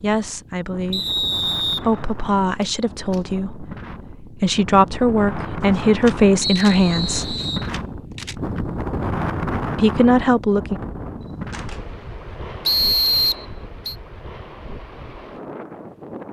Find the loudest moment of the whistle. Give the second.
13 s.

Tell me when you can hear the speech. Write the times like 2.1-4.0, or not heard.
0.0-7.3, 9.8-10.8.